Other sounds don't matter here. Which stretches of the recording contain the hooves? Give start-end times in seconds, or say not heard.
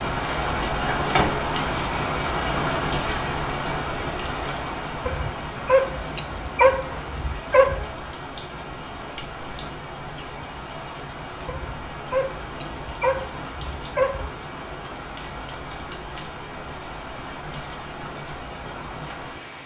not heard.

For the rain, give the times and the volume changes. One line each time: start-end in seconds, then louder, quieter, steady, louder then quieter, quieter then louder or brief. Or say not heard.
0.0-19.6 quieter.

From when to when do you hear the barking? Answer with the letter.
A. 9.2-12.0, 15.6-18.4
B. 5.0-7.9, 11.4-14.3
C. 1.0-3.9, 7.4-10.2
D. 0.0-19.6
B.